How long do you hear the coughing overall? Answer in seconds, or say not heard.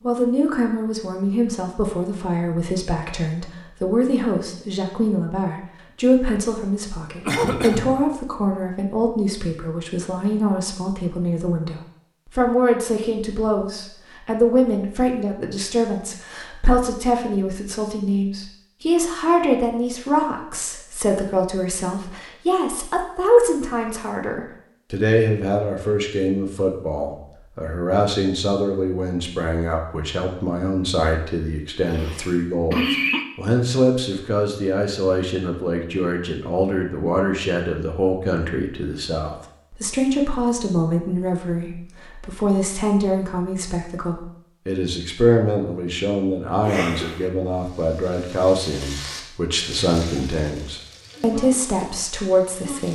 3 s.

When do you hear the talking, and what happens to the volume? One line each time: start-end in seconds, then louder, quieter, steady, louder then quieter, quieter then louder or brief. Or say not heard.
0.0-52.9 steady.